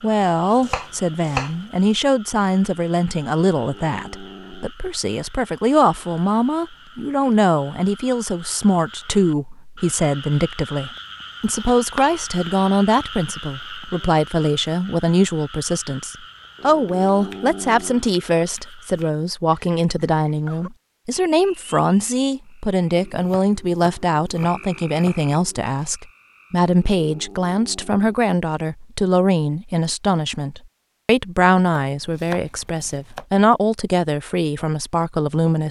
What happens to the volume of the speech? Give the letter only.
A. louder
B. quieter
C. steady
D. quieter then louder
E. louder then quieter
C.